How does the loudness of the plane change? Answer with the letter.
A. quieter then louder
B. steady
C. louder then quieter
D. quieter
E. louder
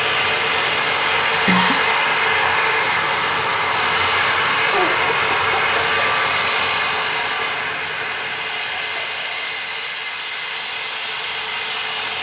D.